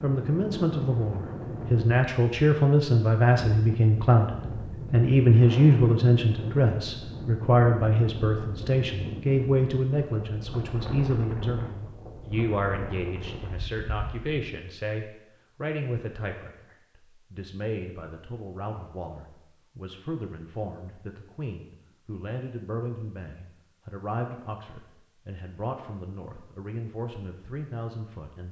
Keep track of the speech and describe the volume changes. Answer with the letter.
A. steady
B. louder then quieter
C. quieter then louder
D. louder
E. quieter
E.